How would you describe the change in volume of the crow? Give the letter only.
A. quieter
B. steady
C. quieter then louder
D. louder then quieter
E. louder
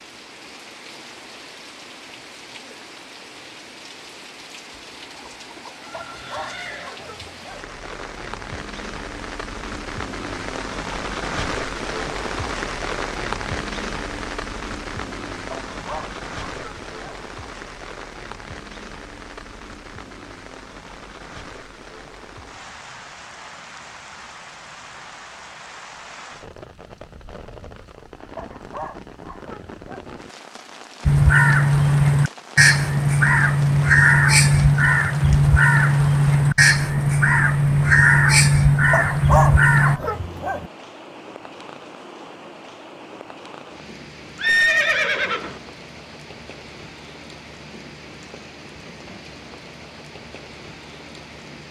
B.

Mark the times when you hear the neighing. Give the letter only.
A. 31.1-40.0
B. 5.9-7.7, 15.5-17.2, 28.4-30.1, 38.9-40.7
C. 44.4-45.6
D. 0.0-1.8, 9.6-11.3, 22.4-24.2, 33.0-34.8
C.